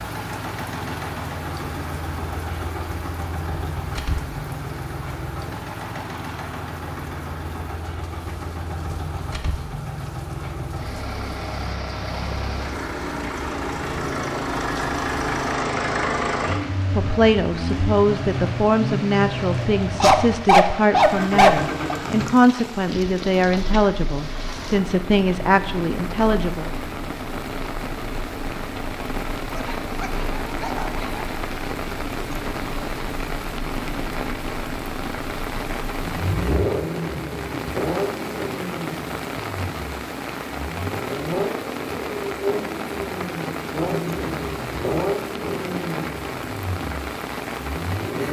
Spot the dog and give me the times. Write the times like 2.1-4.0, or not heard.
20.0-21.9, 29.5-31.3.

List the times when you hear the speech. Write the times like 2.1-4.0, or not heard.
16.4-26.7.